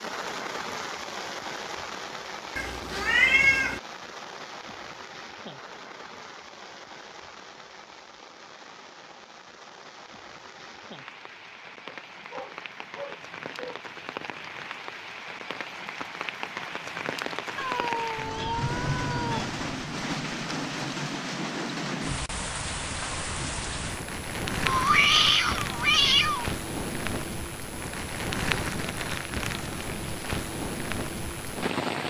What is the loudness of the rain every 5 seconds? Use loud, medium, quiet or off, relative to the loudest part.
medium, quiet, medium, loud, loud, loud, loud.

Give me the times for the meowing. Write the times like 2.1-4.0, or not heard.
2.5-3.8, 17.6-19.4, 24.6-26.4.